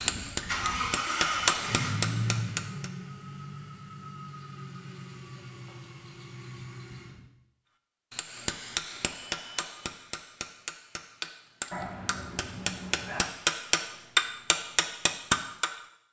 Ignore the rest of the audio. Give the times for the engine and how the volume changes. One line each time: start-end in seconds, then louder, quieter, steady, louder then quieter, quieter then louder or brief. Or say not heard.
0.0-7.2 quieter.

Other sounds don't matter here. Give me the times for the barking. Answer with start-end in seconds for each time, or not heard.
11.7-13.2.